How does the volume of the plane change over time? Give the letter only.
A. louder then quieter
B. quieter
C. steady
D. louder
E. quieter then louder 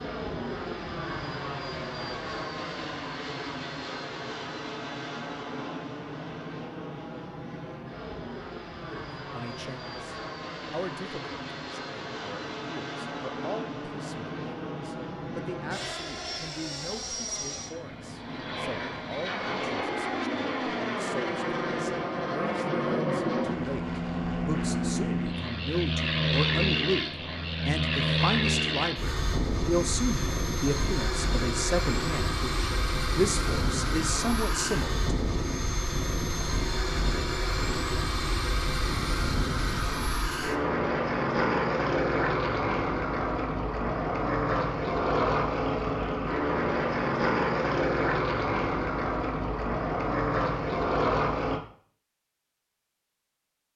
D.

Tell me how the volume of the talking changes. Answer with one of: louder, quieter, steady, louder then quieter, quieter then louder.
louder.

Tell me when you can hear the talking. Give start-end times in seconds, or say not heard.
8.8-35.1.